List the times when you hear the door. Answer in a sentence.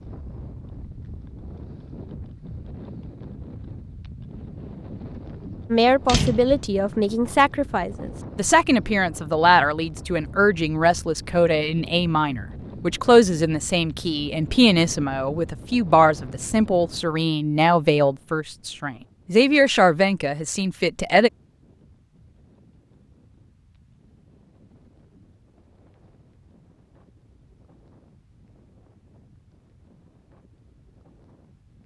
You can hear the door from 6.0 to 6.7 s.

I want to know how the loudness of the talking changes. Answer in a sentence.
The volume of the talking stays about the same.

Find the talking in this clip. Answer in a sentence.
The talking can be heard from 5.7 to 21.3 s.